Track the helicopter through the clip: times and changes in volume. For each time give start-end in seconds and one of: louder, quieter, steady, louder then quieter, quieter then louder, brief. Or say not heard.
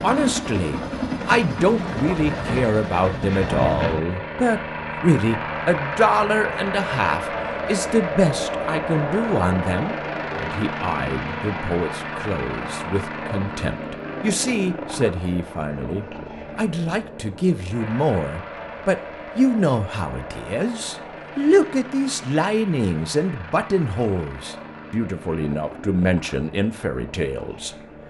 0.0-28.0 quieter.